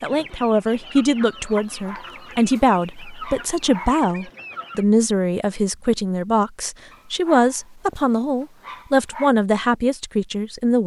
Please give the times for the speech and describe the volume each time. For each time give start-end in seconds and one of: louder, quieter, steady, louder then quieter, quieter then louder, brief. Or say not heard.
0.0-10.8 steady.